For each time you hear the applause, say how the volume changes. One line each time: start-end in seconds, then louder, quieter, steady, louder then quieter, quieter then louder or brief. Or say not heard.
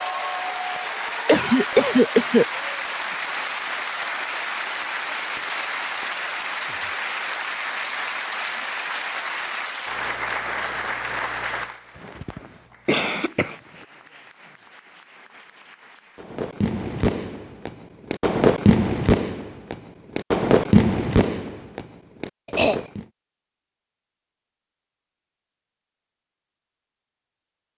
0.0-16.4 quieter.